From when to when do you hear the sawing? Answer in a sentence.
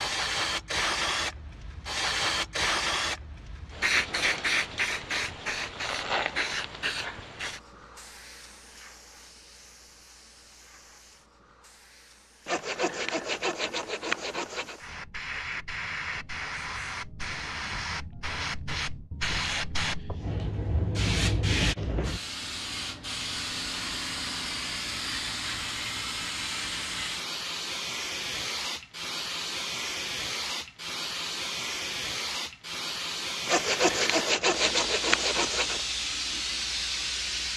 The sawing can be heard from 12.4 to 14.8 s and from 33.5 to 35.8 s.